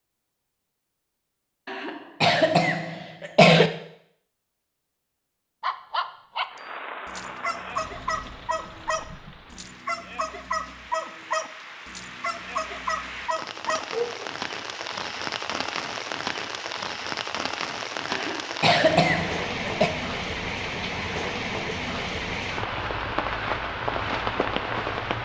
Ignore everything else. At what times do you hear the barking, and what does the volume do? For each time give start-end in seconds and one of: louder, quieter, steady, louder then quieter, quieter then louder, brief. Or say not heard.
5.6-14.3 steady.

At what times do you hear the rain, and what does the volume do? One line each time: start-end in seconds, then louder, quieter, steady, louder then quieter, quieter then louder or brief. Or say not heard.
6.5-25.2 louder.